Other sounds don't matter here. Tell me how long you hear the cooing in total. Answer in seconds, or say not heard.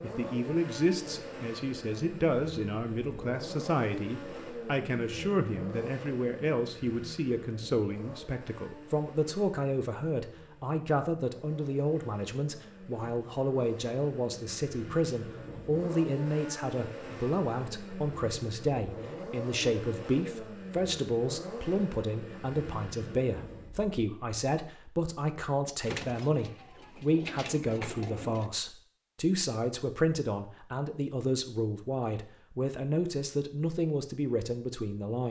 3 s.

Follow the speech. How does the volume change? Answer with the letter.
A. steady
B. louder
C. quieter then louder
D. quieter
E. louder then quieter
A.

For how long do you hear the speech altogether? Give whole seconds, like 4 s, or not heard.
35 s.